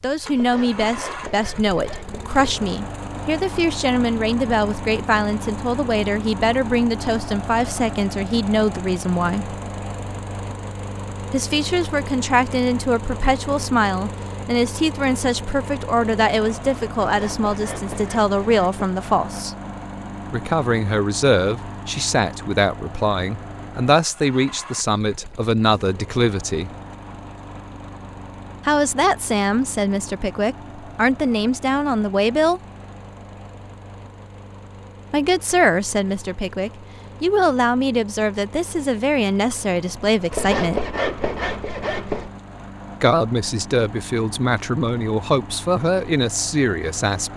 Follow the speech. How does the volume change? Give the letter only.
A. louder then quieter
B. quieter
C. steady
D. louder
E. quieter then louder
C.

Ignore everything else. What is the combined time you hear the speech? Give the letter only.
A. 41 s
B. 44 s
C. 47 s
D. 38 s
D.